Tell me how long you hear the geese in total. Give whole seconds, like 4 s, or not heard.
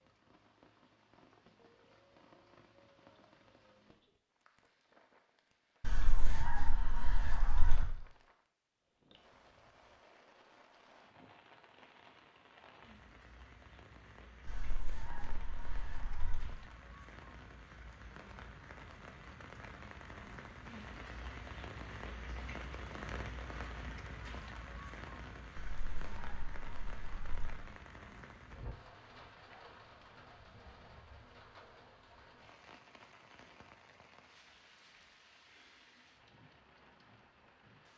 6 s.